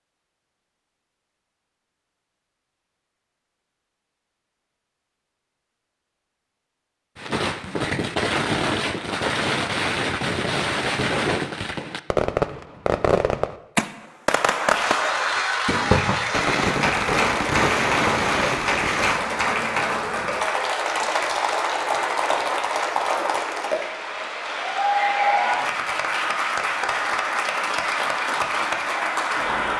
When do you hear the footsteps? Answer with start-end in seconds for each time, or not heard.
not heard.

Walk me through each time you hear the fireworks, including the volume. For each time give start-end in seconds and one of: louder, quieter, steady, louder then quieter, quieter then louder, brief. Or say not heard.
7.2-19.2 steady.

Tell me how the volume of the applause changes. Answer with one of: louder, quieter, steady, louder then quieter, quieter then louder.
steady.